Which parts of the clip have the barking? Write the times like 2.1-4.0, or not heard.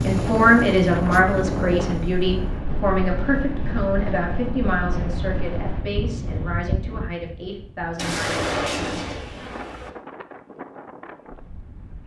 not heard.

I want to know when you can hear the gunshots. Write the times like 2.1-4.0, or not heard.
8.0-9.9.